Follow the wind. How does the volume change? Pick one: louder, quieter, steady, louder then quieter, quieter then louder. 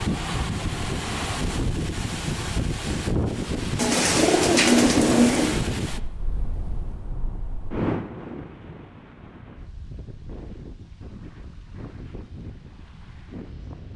quieter.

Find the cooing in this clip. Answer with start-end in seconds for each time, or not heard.
3.8-5.6.